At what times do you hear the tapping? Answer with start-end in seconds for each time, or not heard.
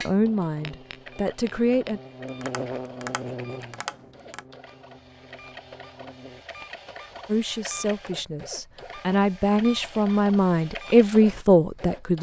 0.0-4.5.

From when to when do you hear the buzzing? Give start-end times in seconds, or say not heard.
0.0-6.5.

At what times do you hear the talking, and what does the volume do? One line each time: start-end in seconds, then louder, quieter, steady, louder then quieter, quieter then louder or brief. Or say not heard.
0.0-2.0 brief
7.2-12.1 louder.